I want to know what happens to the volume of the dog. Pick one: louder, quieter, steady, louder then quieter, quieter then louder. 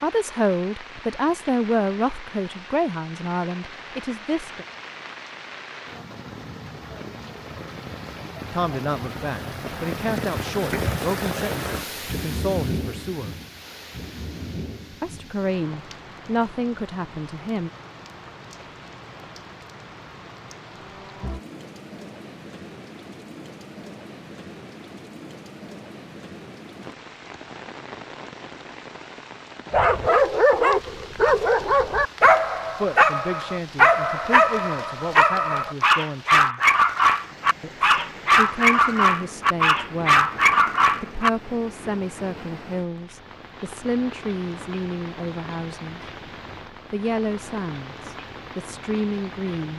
steady.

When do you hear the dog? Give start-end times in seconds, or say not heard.
29.7-41.3.